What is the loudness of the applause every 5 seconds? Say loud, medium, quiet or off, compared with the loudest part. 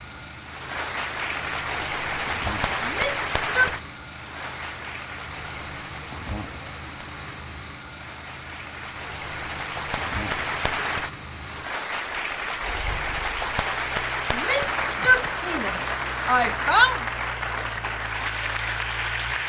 loud, medium, loud, loud.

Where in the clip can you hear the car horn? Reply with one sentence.
The car horn can't be heard in this clip.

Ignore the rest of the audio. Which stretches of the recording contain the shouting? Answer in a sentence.
The shouting can be heard from 2.8 to 3.8 s and from 14.3 to 17.0 s.